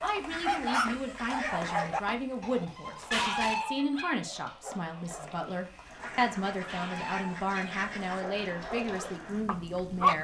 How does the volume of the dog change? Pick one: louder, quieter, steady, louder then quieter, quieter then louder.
quieter then louder.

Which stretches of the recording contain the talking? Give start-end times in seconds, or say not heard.
0.0-10.2.